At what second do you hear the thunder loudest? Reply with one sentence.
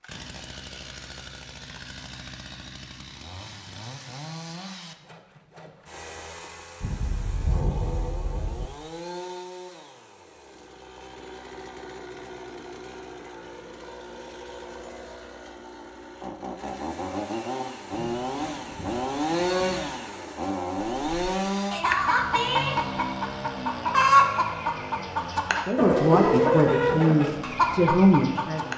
The loudest moment of the thunder is at 8 seconds.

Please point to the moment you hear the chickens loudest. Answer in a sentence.
The volume of the chickens peaks at 24 seconds.